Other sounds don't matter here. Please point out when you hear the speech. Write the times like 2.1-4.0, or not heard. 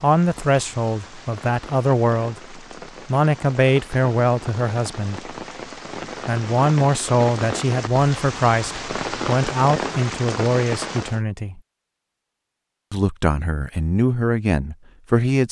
0.0-5.3, 6.2-11.6, 12.9-15.4.